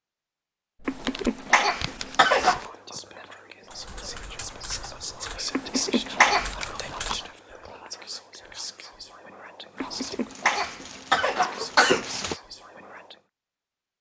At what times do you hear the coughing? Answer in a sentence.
The coughing can be heard from 0.8 to 2.7 s, from 5.5 to 6.5 s and from 9.8 to 12.3 s.